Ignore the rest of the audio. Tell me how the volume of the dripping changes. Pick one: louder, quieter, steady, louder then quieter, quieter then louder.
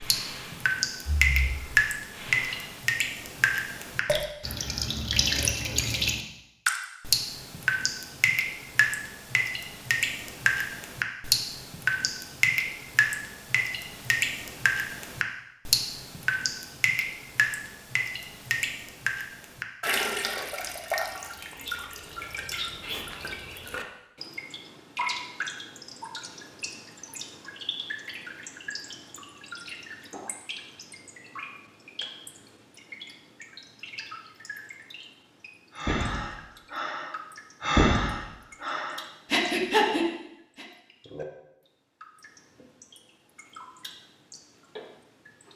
quieter.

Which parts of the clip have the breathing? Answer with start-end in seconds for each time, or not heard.
0.0-2.6, 35.8-40.6.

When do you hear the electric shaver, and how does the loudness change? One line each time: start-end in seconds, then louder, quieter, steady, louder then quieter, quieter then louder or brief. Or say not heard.
not heard.